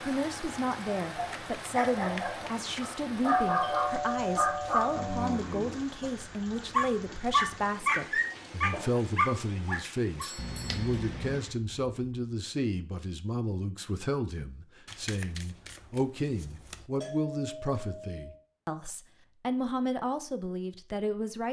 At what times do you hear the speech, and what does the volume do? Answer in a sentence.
You can hear the speech from 0.0 to 21.4 s, at a steady volume.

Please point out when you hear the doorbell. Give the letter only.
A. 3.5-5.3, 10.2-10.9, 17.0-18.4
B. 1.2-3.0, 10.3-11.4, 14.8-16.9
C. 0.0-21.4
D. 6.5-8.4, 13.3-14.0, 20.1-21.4
A.